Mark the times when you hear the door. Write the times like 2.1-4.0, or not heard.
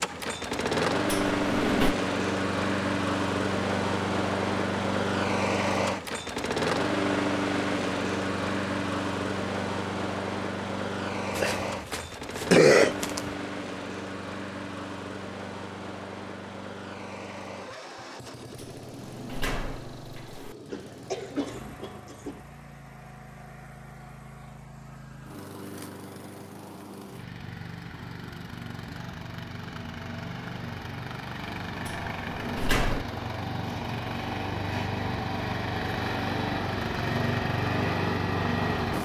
1.1-1.9, 18.6-20.6, 31.9-33.0.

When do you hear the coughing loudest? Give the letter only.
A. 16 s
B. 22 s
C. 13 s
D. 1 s
C.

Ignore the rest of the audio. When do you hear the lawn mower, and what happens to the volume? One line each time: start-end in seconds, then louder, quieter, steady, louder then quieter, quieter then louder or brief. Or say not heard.
0.0-38.9 quieter then louder.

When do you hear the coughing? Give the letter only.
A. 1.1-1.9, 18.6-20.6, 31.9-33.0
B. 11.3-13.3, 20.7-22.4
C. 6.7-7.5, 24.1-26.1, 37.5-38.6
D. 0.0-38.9
B.